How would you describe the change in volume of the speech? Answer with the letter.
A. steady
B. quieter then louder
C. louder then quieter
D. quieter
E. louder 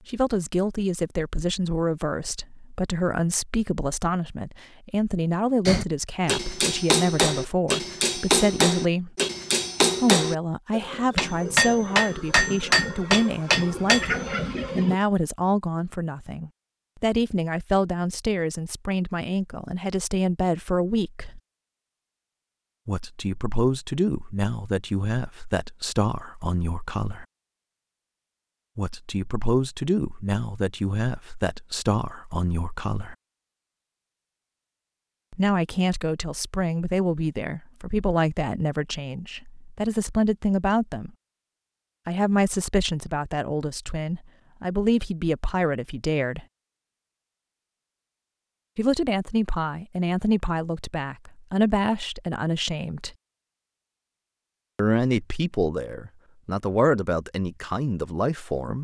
A.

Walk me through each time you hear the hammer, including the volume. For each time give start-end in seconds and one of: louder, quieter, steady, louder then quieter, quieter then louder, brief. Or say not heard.
5.7-14.9 steady.